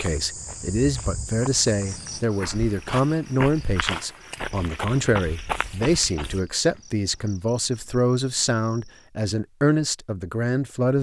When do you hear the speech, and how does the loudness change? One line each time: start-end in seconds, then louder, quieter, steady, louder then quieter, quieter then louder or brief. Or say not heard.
0.0-10.9 steady.